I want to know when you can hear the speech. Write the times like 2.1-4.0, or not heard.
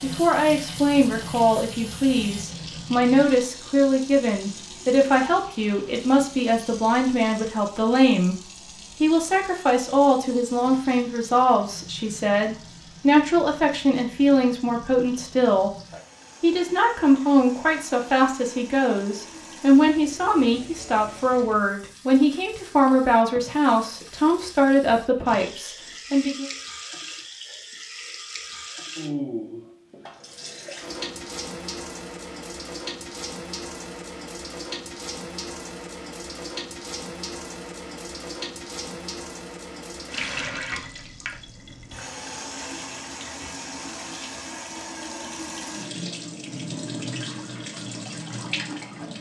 0.0-8.3, 9.0-15.7, 16.4-26.5.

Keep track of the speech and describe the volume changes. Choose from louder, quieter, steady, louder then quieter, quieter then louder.
steady.